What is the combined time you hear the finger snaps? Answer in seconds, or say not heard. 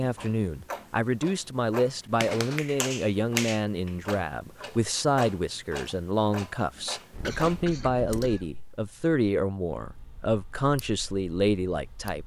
3 s.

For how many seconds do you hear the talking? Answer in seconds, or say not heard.
12 s.